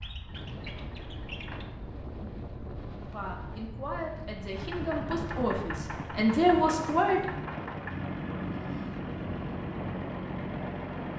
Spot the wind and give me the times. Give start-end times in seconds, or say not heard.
0.0-11.1.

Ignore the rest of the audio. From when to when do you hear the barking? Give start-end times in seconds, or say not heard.
not heard.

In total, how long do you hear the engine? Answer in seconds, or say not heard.
8 s.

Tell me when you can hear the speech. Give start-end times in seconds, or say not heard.
3.0-7.2.